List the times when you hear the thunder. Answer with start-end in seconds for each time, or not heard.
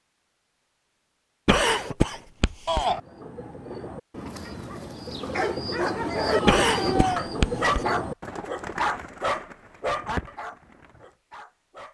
not heard.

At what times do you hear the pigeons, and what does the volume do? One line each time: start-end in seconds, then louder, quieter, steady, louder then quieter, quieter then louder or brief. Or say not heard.
2.8-11.1 louder then quieter.